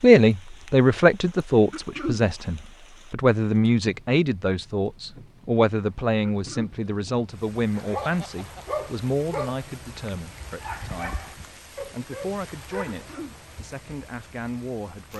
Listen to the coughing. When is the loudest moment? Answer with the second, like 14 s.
2 s.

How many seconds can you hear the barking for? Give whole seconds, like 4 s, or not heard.
5 s.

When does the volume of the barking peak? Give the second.
9 s.